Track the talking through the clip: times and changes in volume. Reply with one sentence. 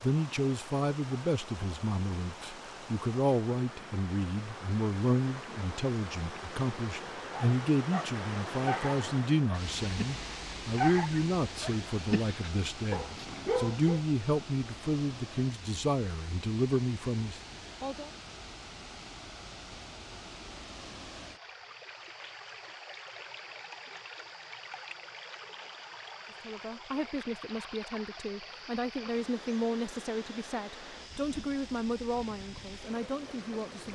You can hear the talking from 0.0 to 18.1 s, at a steady volume; and from 26.3 to 33.8 s, at a steady volume.